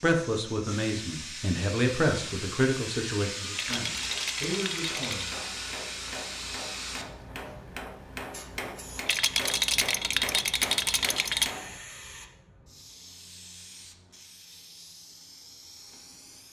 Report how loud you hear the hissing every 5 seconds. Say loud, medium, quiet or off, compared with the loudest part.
loud, loud, medium, quiet.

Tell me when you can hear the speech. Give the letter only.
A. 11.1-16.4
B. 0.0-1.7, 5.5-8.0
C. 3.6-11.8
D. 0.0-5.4
D.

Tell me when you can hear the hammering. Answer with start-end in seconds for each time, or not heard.
3.6-11.8.